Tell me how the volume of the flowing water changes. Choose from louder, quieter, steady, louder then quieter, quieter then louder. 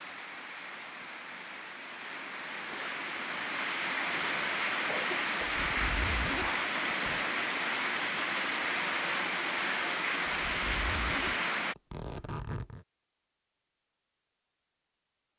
louder.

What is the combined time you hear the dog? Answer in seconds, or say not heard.
not heard.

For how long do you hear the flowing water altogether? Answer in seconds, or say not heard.
12 s.